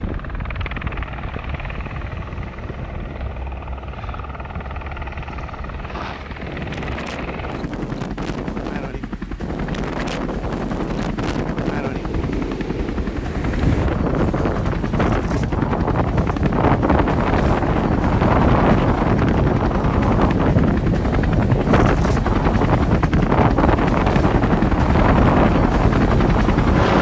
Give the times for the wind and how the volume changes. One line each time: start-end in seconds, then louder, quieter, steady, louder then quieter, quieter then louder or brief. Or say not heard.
0.0-26.9 louder.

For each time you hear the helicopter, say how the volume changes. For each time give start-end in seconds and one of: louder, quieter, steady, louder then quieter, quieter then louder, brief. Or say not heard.
0.0-26.9 louder.